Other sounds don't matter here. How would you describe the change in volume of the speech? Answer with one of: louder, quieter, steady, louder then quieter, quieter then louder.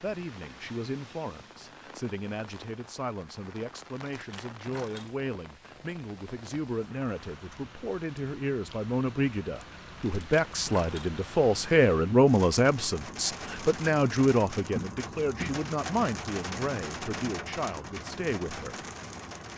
louder then quieter.